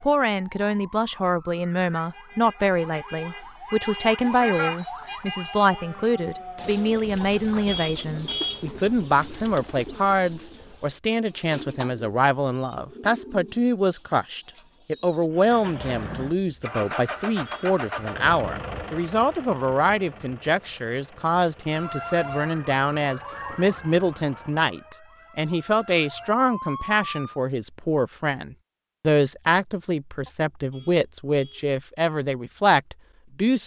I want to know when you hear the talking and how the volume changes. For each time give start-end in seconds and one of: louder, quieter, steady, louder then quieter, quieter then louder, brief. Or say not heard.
0.0-33.6 steady.